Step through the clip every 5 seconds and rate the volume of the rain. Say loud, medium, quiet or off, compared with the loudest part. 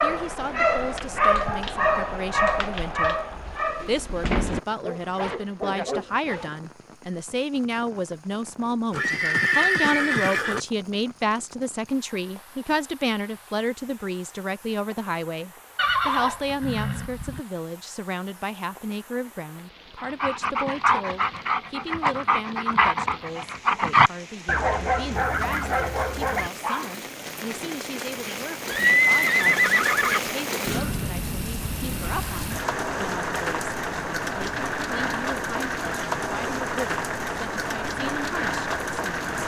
quiet, quiet, quiet, quiet, quiet, medium, loud, loud.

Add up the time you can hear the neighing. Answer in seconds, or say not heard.
5 s.